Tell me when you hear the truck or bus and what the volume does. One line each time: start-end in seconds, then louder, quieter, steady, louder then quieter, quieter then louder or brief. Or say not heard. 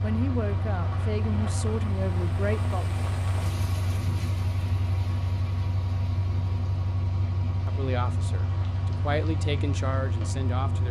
0.0-10.8 steady.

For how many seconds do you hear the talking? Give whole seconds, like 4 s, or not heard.
6 s.